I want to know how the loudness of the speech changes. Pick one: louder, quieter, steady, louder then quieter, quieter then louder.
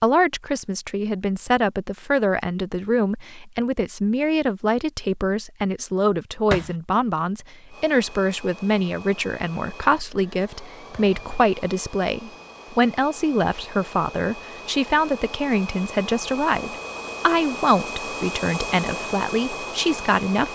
steady.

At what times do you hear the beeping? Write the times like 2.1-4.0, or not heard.
not heard.